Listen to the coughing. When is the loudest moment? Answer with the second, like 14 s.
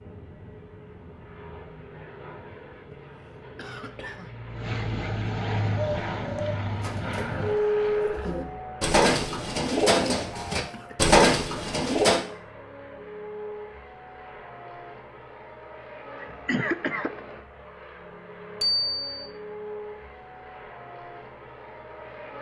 17 s.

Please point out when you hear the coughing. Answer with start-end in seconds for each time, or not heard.
2.9-4.3, 10.3-10.9, 16.2-17.2.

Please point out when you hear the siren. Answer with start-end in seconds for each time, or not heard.
not heard.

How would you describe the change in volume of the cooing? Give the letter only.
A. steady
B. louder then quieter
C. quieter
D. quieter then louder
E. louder
E.